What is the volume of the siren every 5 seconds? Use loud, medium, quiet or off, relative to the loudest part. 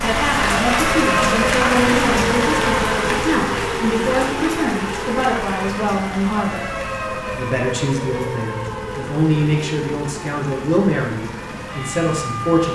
loud, medium, medium.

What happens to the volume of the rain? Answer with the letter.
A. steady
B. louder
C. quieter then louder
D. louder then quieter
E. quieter
E.